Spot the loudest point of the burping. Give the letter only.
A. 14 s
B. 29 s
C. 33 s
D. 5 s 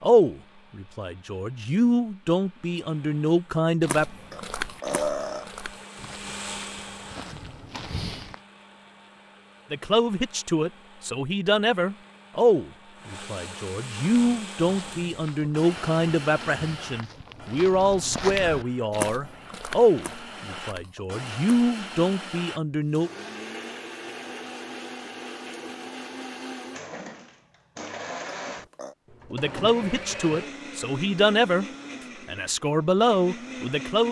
D.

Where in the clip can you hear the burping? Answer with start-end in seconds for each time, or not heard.
4.3-5.5, 28.2-28.9.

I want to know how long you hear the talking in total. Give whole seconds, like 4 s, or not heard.
22 s.